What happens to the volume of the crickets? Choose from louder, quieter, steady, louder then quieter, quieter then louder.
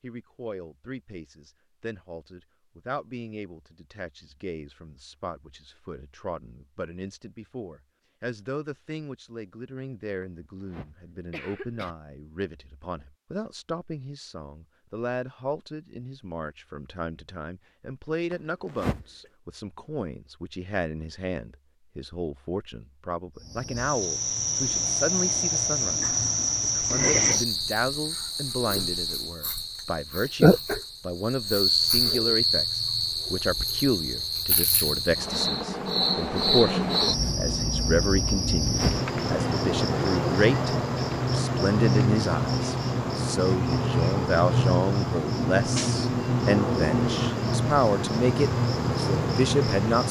steady.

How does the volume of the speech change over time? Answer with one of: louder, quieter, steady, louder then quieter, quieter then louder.
louder.